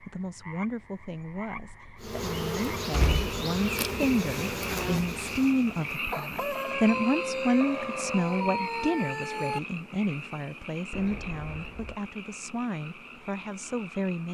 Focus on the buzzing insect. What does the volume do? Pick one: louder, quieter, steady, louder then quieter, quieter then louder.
quieter.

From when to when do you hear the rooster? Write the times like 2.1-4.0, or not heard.
6.1-9.6.